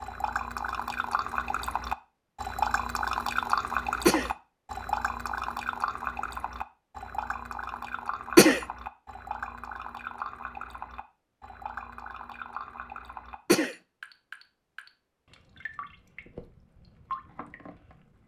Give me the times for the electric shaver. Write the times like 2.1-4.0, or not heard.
not heard.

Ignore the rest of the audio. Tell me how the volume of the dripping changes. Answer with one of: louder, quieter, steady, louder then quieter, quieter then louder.
quieter.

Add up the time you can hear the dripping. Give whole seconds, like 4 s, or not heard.
18 s.